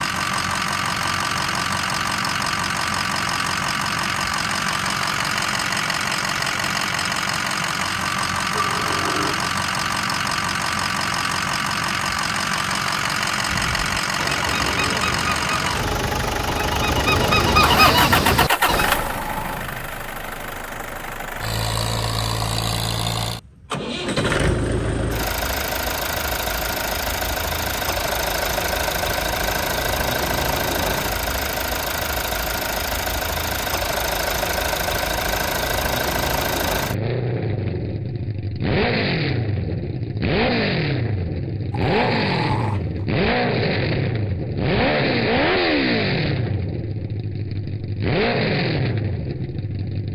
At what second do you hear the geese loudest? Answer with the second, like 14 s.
18 s.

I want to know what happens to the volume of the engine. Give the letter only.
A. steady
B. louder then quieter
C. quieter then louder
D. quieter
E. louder
A.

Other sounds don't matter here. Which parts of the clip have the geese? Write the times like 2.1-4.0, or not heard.
13.4-18.9.